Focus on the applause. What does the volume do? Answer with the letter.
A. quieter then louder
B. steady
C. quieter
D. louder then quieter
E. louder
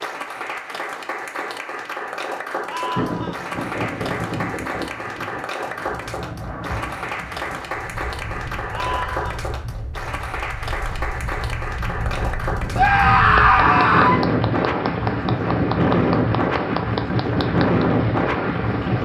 B.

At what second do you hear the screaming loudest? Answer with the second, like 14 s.
13 s.